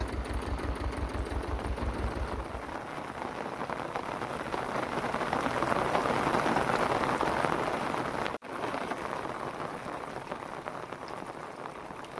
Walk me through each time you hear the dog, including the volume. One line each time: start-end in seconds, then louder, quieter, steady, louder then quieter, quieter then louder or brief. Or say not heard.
not heard.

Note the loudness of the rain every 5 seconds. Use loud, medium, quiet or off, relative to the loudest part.
medium, loud, medium.